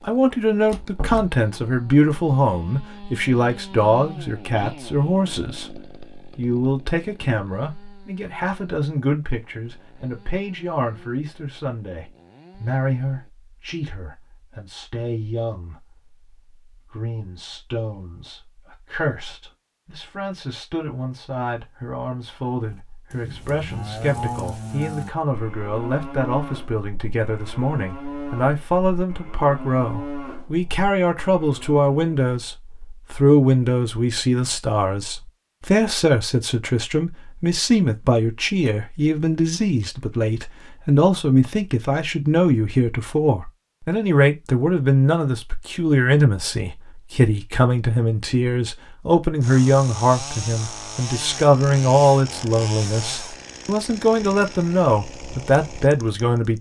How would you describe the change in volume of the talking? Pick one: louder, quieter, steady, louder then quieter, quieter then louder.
quieter then louder.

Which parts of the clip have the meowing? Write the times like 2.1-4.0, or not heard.
not heard.